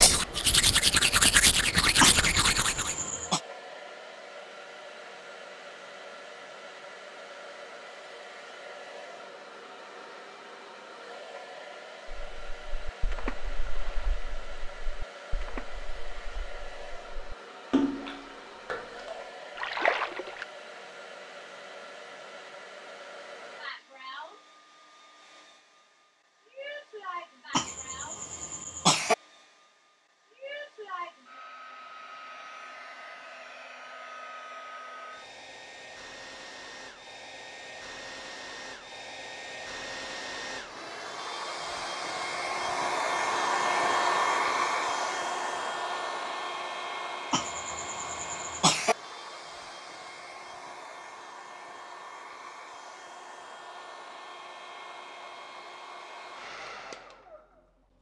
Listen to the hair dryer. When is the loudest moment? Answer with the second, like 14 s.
44 s.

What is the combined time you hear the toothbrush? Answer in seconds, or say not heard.
3 s.